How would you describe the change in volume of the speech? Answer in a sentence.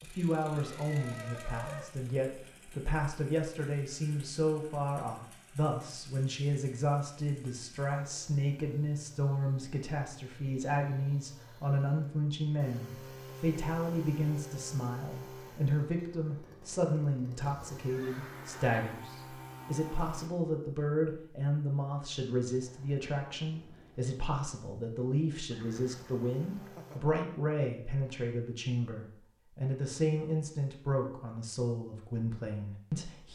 The loudness of the speech stays about the same.